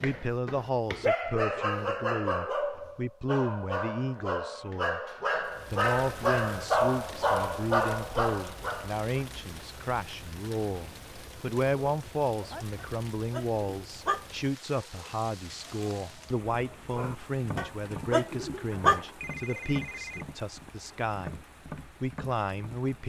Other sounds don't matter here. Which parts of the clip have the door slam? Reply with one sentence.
The door slam can't be heard in this clip.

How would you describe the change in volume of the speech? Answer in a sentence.
The volume of the speech stays about the same.